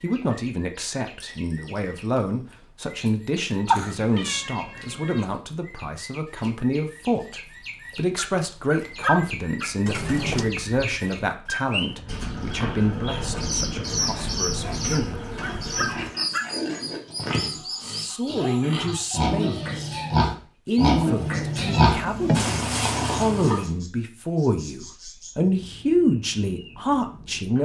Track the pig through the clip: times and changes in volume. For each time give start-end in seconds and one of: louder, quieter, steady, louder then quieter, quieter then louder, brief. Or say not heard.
11.8-23.6 louder.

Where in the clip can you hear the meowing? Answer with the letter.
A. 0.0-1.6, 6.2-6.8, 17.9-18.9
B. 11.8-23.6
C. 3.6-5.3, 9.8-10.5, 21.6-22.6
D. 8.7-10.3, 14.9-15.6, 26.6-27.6
C.